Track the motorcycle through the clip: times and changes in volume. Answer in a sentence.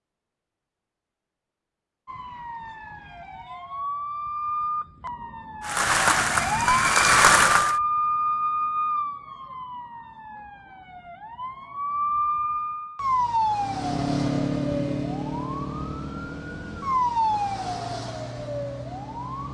You can hear the motorcycle from 13.6 to 19.5 s, getting quieter.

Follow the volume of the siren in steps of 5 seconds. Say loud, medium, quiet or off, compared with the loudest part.
medium, loud, loud, loud.